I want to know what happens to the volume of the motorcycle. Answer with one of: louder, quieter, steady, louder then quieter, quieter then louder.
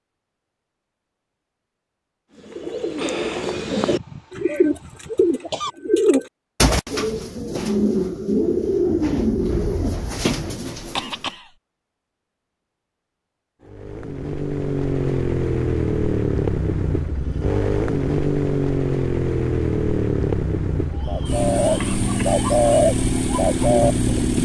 steady.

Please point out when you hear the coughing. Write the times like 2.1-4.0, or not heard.
3.9-5.7, 10.8-11.5, 21.8-22.4.